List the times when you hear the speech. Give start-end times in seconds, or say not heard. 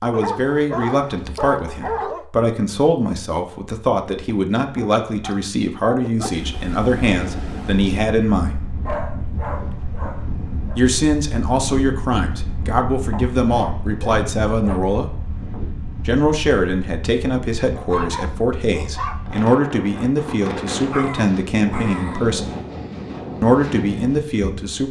0.0-8.6, 10.8-15.1, 16.1-22.5, 23.4-24.8.